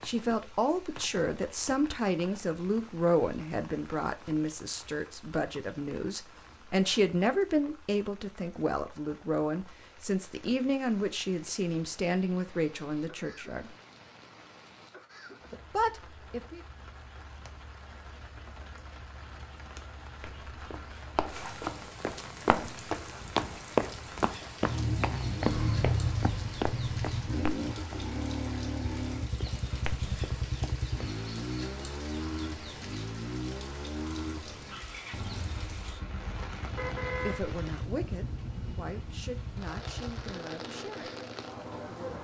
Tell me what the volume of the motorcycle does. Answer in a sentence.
The loudness of the motorcycle goes down.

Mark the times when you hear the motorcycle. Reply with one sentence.
You can hear the motorcycle from 24.6 to 42.1 s.